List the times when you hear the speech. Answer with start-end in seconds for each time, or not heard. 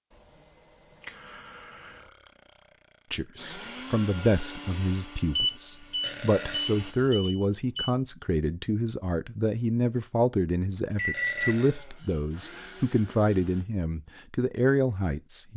3.1-15.5.